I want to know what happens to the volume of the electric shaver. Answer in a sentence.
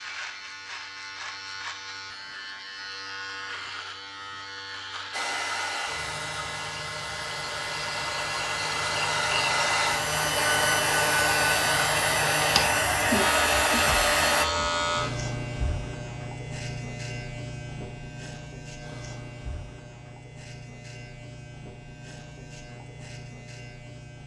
The volume of the electric shaver goes up, then down.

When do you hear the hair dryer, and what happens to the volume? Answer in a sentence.
The hair dryer can be heard from 5.1 to 14.4 s, getting louder.